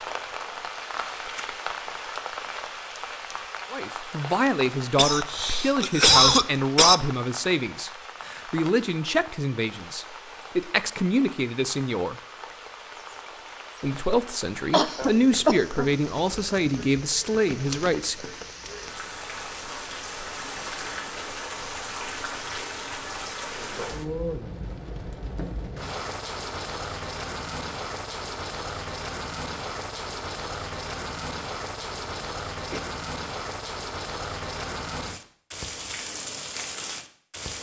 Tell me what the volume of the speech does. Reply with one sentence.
The loudness of the speech stays about the same.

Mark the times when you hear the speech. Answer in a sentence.
You can hear the speech from 3.7 to 12.2 s and from 13.8 to 18.4 s.